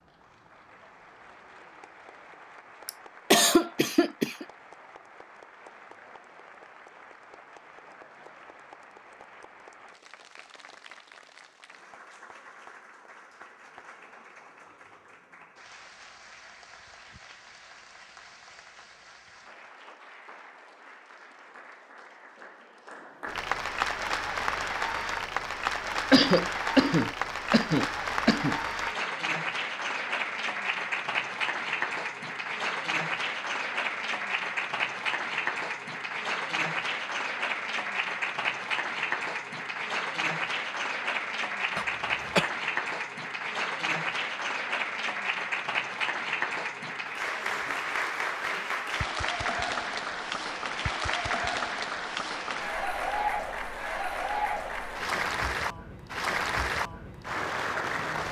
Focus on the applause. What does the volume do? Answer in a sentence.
The volume of the applause goes up.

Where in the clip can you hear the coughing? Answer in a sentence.
You can hear the coughing from 2.9 to 4.5 s, from 26.1 to 28.6 s and from 41.8 to 42.5 s.